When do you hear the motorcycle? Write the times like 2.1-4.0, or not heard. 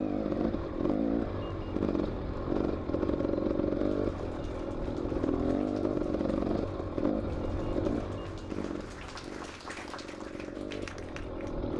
0.0-11.7.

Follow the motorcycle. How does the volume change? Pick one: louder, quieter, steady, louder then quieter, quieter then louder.
quieter.